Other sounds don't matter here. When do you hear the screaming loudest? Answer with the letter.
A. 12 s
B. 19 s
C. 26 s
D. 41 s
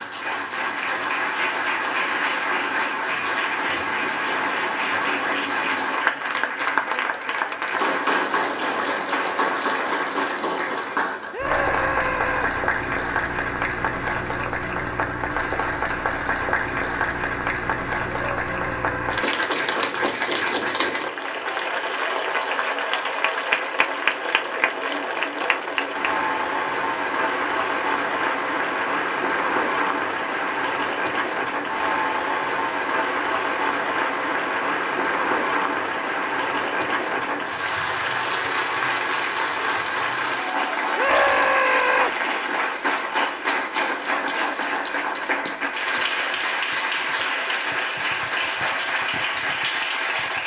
D.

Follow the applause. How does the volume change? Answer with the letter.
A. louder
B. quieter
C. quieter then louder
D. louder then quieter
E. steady
E.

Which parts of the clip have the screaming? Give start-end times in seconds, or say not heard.
11.3-12.5, 18.1-19.2, 41.0-42.1.